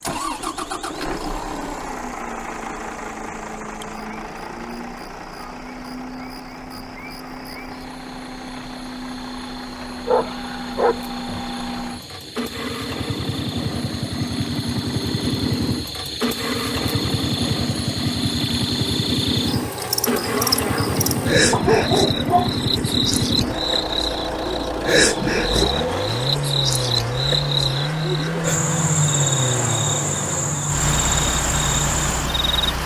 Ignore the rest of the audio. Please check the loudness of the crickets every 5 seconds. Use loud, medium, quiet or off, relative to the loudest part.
quiet, quiet, quiet, medium, loud, loud, loud.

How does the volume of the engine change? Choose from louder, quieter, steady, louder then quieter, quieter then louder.
louder.